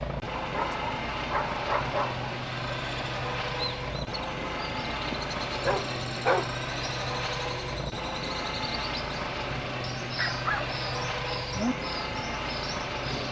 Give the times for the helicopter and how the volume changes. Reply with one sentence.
You can hear the helicopter from 0.0 to 13.2 s, at a steady volume.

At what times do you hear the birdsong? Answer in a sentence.
You can hear the birdsong from 2.4 to 13.2 s.